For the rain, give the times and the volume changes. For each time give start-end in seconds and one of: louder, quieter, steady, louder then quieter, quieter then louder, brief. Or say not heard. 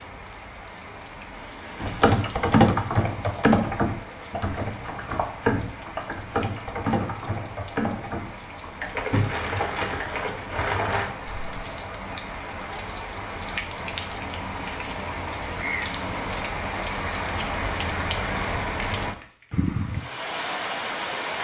0.0-21.3 louder.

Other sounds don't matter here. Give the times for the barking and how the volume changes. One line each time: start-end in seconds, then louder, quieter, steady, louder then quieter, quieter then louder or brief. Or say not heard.
not heard.